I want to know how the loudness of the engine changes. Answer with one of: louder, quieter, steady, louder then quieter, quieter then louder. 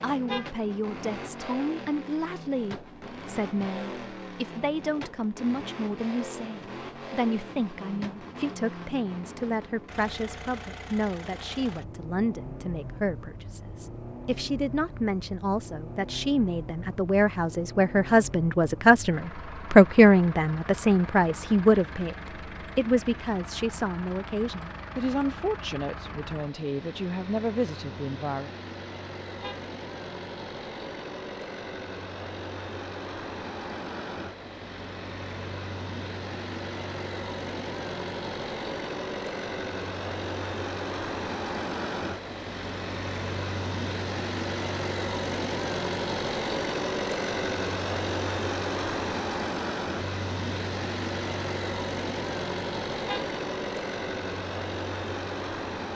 louder.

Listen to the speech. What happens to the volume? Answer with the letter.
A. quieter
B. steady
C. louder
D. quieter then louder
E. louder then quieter
E.